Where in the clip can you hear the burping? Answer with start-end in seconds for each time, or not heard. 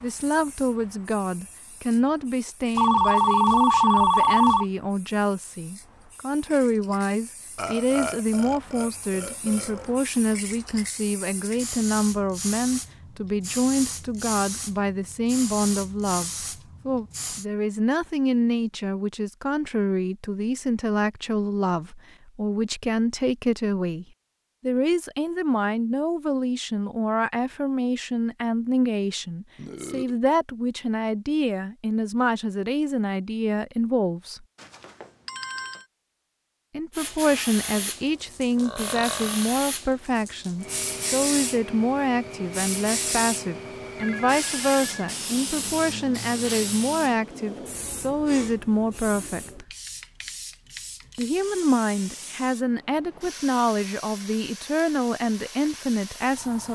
7.5-9.9, 29.6-30.1, 38.5-39.5.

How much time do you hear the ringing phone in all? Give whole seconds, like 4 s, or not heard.
4 s.